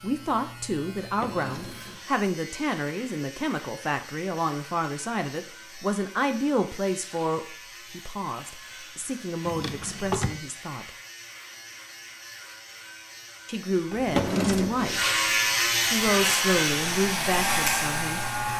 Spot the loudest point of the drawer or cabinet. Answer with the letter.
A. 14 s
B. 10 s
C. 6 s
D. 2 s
A.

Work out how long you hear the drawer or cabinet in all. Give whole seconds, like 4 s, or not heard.
3 s.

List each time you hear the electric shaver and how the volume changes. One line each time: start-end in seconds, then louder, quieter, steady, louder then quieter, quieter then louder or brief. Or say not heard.
0.0-18.5 louder.